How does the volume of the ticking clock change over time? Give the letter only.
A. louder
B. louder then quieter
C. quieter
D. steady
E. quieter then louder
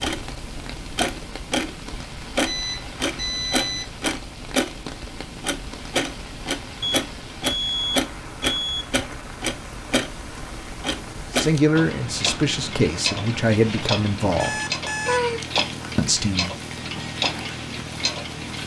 D.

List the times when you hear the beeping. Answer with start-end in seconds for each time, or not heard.
2.5-3.9, 6.8-8.8, 14.4-15.4.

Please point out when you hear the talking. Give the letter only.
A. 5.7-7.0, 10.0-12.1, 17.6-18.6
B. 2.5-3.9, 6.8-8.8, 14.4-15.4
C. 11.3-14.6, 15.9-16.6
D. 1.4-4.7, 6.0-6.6
C.